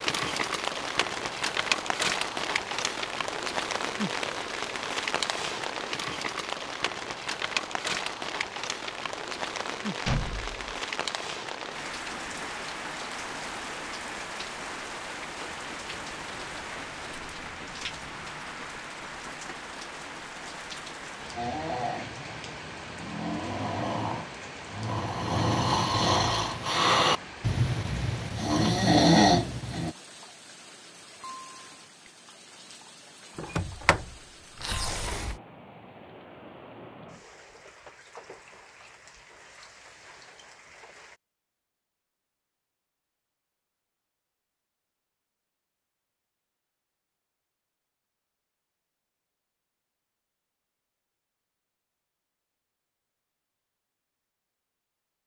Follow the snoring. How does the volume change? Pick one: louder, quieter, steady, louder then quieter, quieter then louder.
louder.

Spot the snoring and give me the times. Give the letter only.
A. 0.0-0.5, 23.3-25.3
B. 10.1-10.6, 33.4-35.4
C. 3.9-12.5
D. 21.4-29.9
D.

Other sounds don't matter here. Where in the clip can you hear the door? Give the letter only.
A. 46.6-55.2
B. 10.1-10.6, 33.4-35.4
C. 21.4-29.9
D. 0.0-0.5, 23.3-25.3
B.